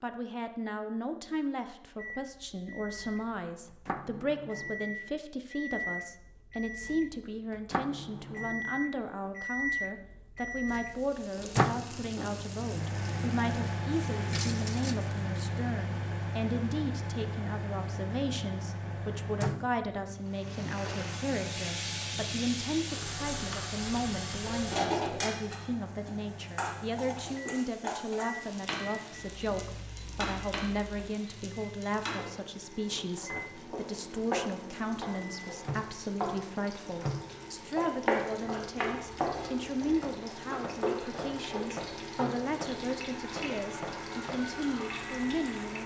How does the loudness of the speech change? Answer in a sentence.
The volume of the speech stays about the same.